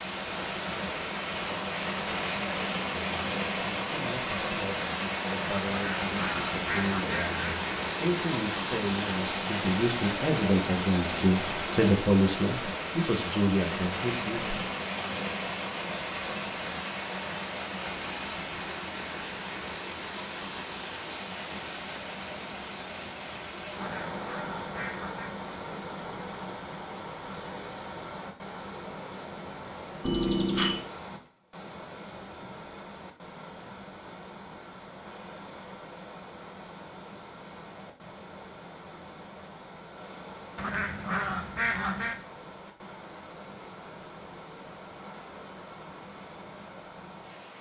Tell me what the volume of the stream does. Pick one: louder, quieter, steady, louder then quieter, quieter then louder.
quieter.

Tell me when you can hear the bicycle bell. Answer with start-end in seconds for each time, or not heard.
30.0-30.8.